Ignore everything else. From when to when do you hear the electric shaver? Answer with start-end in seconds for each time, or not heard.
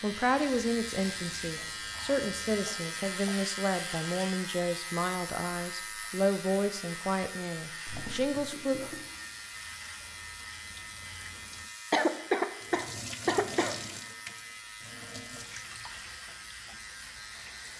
0.0-17.7.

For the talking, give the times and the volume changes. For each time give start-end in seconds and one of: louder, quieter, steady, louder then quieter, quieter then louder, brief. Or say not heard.
0.0-8.8 steady.